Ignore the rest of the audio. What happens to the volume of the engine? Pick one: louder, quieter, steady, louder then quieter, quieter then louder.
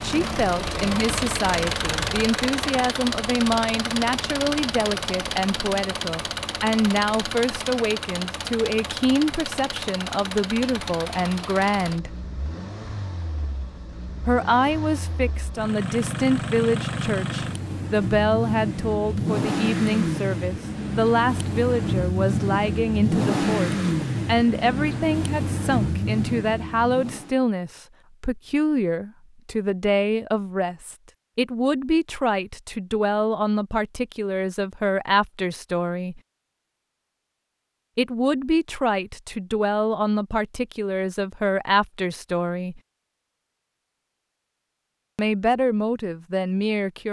quieter then louder.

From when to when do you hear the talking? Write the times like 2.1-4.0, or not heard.
0.0-12.2, 14.2-36.2, 38.0-42.8, 45.1-47.0.